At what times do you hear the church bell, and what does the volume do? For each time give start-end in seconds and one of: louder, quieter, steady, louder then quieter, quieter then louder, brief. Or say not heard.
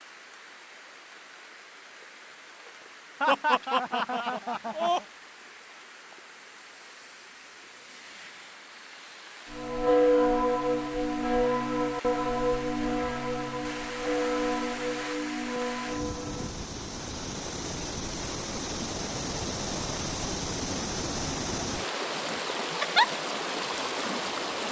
9.5-16.6 quieter.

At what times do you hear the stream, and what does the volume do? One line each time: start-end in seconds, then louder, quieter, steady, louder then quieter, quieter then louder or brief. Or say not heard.
0.0-24.6 louder.